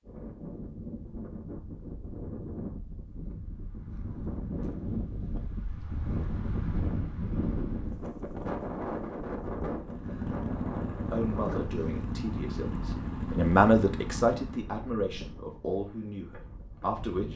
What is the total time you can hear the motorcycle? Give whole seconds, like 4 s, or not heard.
5 s.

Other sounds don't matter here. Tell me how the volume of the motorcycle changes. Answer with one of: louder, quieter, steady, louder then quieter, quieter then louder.
steady.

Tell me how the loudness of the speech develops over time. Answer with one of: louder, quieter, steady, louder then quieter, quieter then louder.
louder then quieter.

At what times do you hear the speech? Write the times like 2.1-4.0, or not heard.
11.1-17.3.